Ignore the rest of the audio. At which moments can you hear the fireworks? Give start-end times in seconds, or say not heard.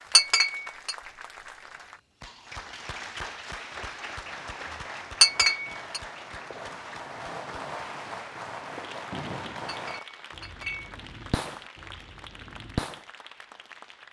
4.0-13.1.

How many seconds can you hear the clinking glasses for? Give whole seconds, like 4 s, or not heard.
3 s.